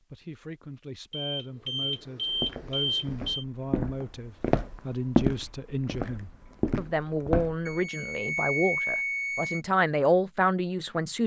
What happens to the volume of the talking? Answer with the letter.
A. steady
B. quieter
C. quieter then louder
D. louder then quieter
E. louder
E.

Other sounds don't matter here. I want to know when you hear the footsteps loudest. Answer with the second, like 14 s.
5 s.